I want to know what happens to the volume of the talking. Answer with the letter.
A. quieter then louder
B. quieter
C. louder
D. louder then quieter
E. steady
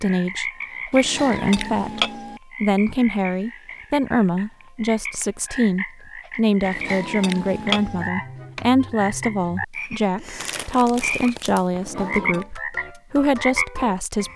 E.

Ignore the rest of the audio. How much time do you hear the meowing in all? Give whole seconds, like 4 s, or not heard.
4 s.